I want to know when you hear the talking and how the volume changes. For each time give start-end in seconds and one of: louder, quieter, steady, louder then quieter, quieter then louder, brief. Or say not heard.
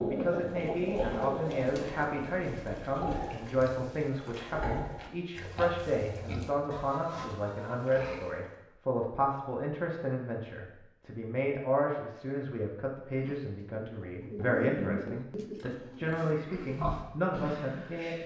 0.0-18.2 steady.